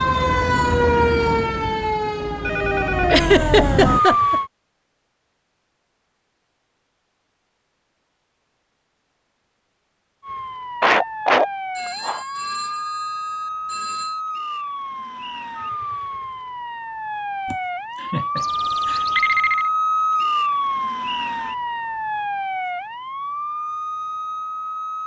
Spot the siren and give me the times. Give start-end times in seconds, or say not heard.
0.0-4.5, 10.2-25.0.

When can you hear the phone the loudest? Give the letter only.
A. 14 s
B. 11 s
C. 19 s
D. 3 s
C.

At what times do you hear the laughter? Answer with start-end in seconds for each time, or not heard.
3.0-4.4, 10.8-12.2, 17.4-19.1.